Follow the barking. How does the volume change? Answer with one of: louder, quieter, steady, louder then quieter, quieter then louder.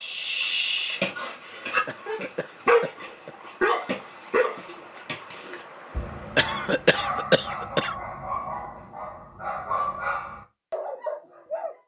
quieter then louder.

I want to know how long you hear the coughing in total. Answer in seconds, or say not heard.
3 s.